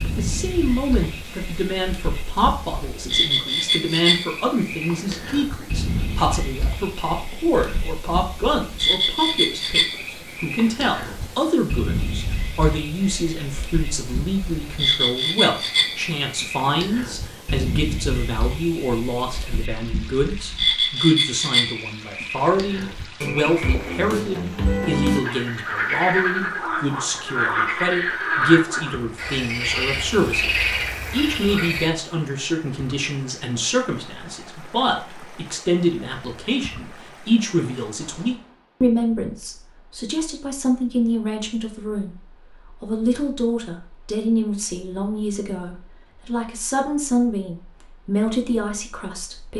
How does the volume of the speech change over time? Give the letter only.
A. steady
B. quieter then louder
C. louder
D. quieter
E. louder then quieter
A.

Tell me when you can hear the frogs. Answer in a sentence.
The frogs can be heard from 0.0 to 31.9 s.